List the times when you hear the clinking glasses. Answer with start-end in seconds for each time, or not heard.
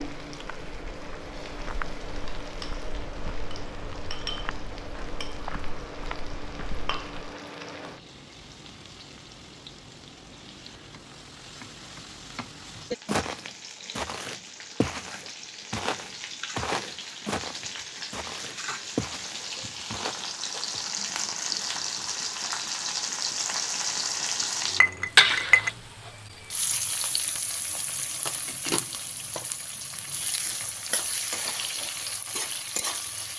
24.8-25.7.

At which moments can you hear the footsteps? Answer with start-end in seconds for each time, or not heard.
0.2-7.3, 13.1-20.9.